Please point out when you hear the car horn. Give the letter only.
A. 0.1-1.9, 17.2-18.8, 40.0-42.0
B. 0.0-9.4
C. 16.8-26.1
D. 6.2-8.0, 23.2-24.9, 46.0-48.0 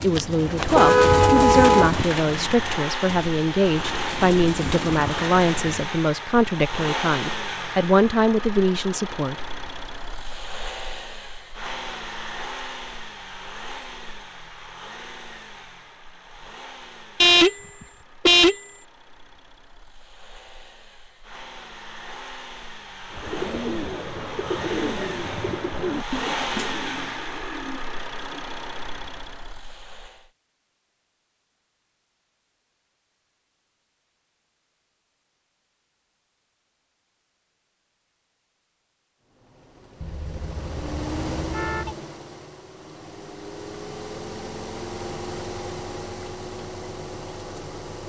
A.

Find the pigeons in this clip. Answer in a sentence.
The pigeons can be heard from 0.0 to 5.6 s and from 23.1 to 28.6 s.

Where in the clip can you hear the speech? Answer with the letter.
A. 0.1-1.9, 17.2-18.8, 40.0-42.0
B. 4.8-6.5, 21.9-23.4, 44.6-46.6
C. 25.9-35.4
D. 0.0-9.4
D.